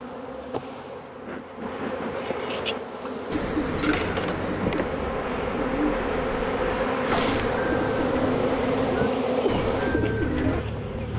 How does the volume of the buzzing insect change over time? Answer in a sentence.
The loudness of the buzzing insect goes up.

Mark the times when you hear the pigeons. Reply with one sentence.
The pigeons can be heard from 3.3 to 10.7 s.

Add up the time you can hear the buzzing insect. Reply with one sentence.
You can hear the buzzing insect for 11 seconds altogether.